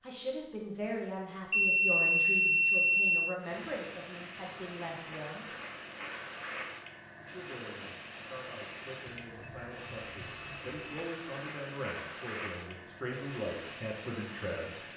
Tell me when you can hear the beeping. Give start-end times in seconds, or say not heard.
1.5-3.4, 9.2-11.1.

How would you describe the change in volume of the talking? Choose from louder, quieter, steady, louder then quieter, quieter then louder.
quieter then louder.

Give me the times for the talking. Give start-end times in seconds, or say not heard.
0.0-5.5, 7.2-14.8.